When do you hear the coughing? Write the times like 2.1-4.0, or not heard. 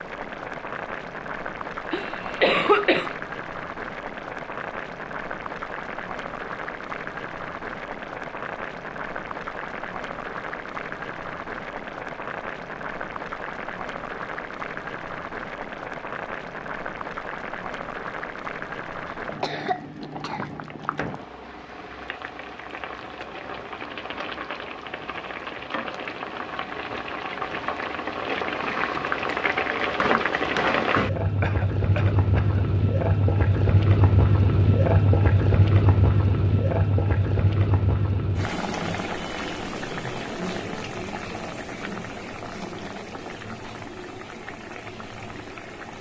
1.9-3.1, 19.1-20.5, 31.4-32.6.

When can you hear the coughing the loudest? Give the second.
3 s.